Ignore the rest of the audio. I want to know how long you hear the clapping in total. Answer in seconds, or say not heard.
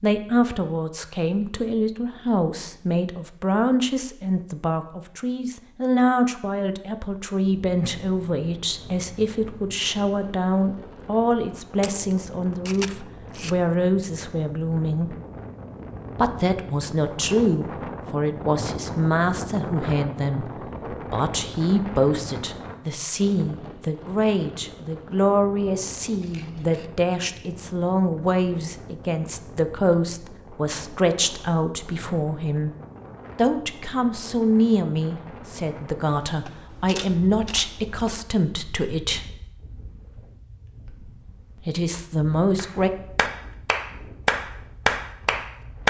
3 s.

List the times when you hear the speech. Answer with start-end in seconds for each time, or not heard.
0.0-15.2, 16.1-32.7, 33.4-39.3, 41.6-42.9.